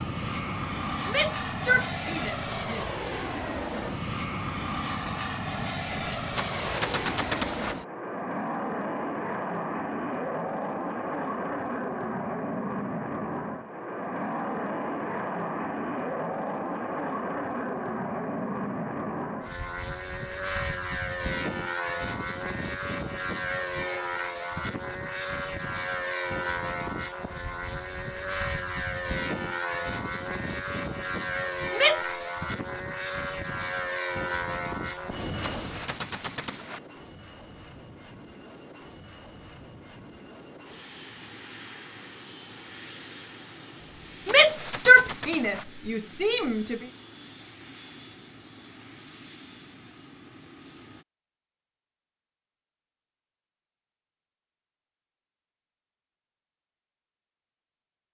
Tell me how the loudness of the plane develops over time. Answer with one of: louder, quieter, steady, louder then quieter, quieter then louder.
quieter.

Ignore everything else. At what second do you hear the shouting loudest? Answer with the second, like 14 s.
45 s.